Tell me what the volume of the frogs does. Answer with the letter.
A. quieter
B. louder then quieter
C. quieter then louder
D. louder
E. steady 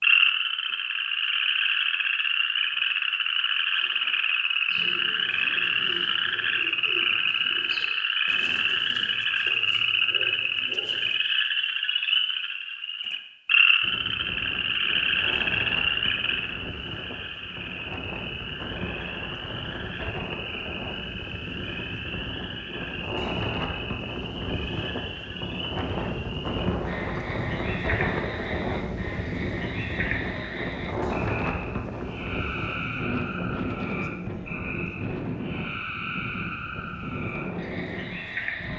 A.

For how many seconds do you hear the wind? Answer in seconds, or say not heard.
25 s.